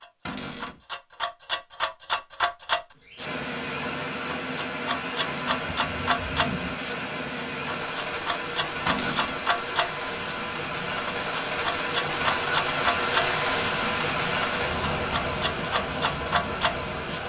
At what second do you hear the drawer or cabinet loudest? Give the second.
9 s.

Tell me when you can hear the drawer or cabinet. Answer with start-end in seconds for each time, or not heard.
0.2-0.8, 8.8-9.4.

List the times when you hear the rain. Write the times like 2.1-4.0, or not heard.
3.1-17.2.